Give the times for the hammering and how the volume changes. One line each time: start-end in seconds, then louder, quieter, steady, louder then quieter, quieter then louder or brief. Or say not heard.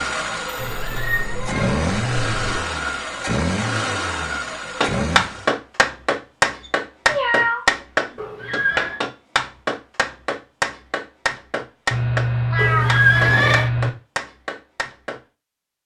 4.8-15.2 quieter.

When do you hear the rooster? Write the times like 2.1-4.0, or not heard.
not heard.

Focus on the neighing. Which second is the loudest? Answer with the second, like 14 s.
13 s.